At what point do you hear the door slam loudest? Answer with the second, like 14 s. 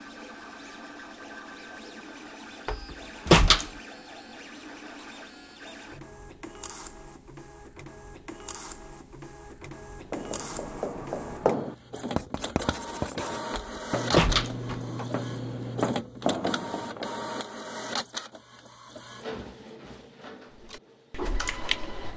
3 s.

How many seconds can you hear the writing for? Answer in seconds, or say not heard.
7 s.